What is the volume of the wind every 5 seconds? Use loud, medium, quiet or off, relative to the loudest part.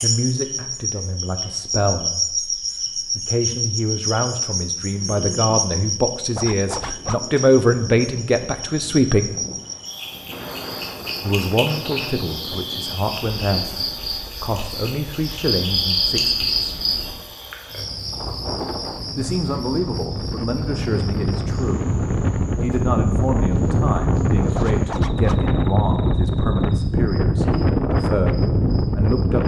off, quiet, quiet, quiet, loud, loud.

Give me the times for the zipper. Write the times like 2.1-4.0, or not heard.
6.3-7.3, 24.6-25.5.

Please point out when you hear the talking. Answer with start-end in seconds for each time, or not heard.
0.0-9.3, 11.2-16.6, 19.1-21.9, 22.6-29.4.